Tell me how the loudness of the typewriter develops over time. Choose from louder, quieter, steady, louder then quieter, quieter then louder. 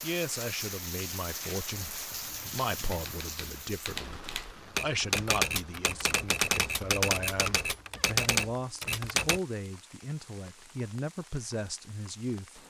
louder.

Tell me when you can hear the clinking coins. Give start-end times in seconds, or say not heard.
not heard.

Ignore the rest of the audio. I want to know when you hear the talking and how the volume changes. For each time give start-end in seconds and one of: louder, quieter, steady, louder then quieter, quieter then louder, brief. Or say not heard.
0.0-12.6 steady.